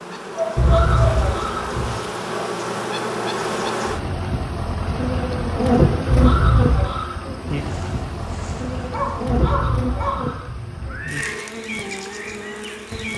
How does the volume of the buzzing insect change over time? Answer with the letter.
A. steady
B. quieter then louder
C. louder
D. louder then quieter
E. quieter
D.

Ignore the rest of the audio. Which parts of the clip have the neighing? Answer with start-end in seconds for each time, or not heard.
0.6-1.9, 6.1-7.2, 9.2-11.3.